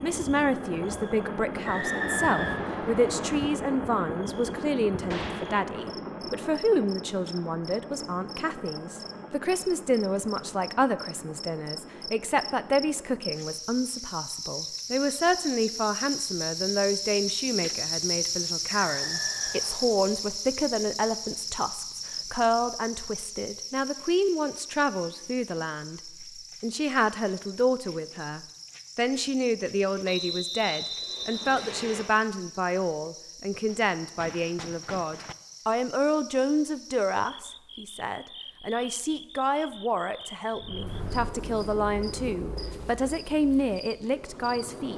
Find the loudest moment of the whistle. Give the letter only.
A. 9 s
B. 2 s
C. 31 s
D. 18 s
B.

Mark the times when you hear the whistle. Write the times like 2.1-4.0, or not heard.
1.6-3.1, 18.6-19.9, 30.1-32.0.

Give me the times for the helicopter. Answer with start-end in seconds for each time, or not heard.
0.0-13.7, 40.5-44.9.